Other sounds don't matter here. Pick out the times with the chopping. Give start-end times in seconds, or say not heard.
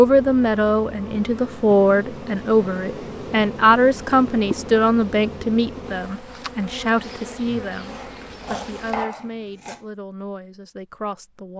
7.8-9.8.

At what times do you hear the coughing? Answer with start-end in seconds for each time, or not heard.
not heard.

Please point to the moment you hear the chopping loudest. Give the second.
9 s.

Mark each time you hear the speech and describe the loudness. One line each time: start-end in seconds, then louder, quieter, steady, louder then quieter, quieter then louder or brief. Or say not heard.
0.0-11.5 quieter.